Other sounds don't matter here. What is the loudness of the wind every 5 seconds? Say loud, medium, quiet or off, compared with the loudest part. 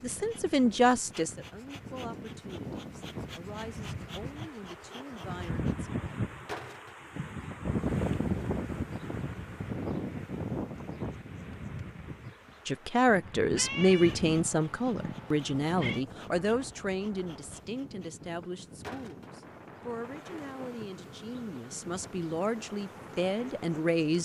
medium, loud, medium, quiet, quiet.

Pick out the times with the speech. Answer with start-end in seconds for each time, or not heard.
0.0-5.8, 12.7-24.2.